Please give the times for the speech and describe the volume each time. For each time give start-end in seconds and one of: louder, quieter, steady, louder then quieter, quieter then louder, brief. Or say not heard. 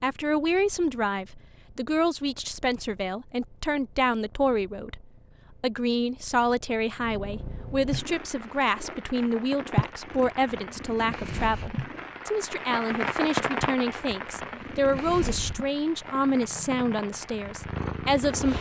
0.0-18.5 steady.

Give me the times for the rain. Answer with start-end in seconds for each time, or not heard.
8.0-18.5.